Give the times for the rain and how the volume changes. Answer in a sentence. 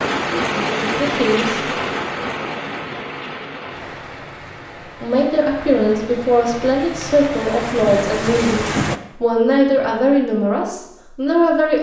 The rain can be heard from 0.0 to 9.0 s, getting quieter then louder.